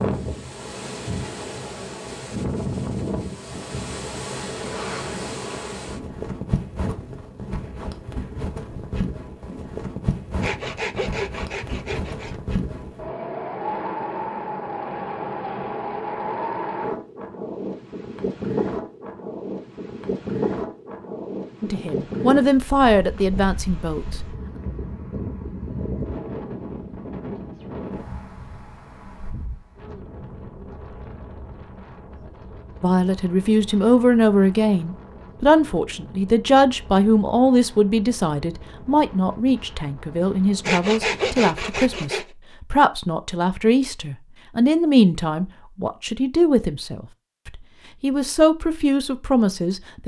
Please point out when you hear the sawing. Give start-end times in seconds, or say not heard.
10.4-12.4, 40.6-42.2.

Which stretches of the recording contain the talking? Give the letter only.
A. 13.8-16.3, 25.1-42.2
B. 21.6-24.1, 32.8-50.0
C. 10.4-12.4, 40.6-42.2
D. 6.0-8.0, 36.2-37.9
B.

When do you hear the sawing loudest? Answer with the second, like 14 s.
41 s.